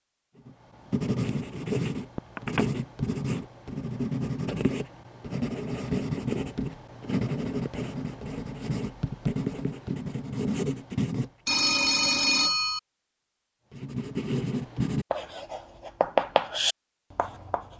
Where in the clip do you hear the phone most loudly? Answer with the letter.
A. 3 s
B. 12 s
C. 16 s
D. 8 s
B.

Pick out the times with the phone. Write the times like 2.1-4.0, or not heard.
2.1-2.6, 11.4-12.8.